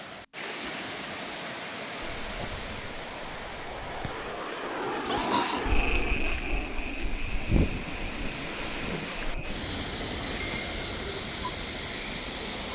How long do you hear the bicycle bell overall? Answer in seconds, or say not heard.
3 s.